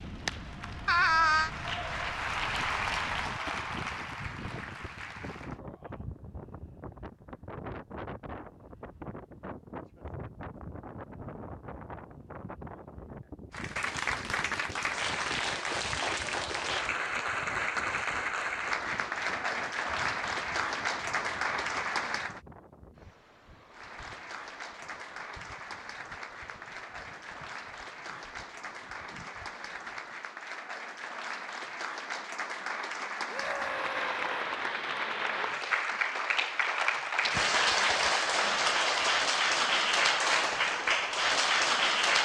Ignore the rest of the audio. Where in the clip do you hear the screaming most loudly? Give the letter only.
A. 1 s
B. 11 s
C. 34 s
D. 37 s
A.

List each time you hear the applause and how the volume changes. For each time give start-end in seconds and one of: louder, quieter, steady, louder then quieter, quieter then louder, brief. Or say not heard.
0.0-5.6 louder then quieter
13.5-22.4 steady
23.7-42.2 louder.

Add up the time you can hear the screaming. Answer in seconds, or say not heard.
2 s.